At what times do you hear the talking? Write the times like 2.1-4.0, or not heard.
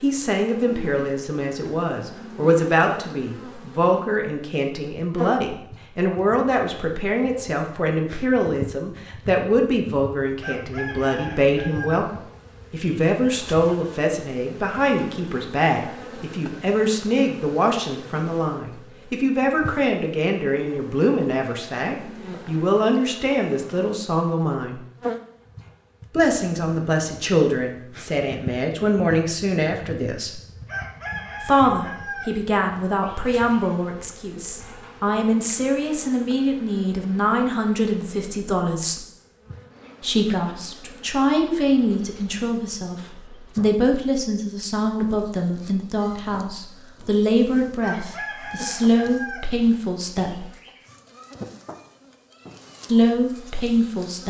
0.0-24.8, 26.1-30.4, 31.4-39.0, 40.0-50.5, 52.9-54.2.